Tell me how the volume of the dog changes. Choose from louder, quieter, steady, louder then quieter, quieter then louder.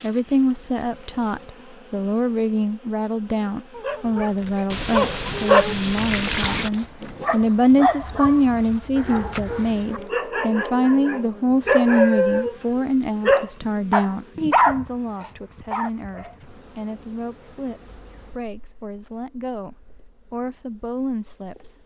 quieter then louder.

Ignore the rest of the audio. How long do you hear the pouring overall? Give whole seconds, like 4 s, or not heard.
2 s.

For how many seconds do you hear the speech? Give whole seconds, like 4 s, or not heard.
22 s.